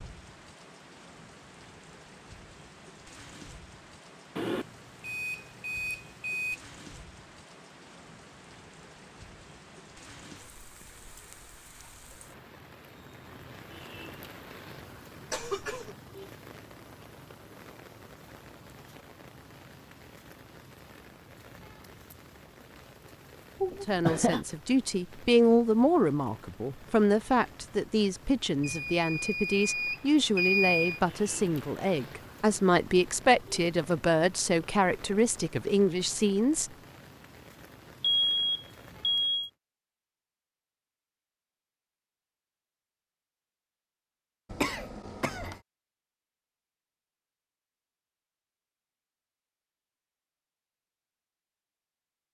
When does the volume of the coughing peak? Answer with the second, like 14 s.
24 s.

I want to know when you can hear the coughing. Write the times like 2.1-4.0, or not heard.
15.3-15.9, 23.6-24.4, 44.5-45.6.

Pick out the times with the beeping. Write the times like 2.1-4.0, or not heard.
4.3-6.5, 28.6-31.0, 38.0-39.5.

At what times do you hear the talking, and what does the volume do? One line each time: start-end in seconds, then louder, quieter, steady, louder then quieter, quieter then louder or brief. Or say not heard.
23.9-36.7 steady.